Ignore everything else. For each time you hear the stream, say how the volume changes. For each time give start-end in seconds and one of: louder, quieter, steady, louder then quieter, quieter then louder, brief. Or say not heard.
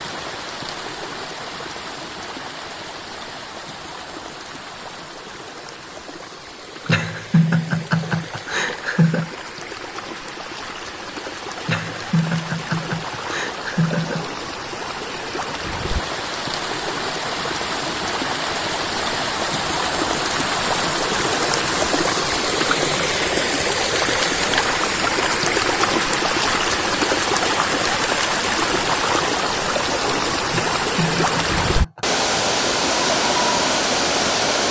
0.0-34.6 louder.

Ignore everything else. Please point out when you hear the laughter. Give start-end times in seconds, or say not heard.
6.8-9.3, 11.7-14.2, 30.5-32.0.